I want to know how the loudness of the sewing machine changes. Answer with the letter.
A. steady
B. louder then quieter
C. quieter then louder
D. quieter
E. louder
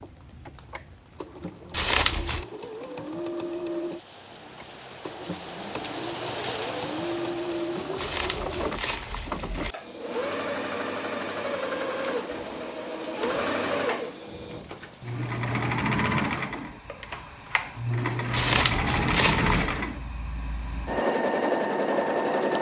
E.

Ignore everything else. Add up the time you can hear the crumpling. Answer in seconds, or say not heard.
4 s.